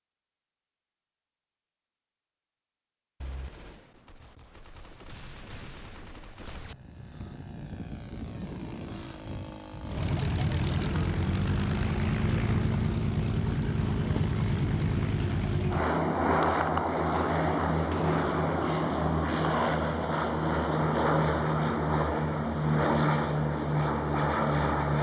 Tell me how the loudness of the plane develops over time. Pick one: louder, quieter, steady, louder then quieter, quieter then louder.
louder.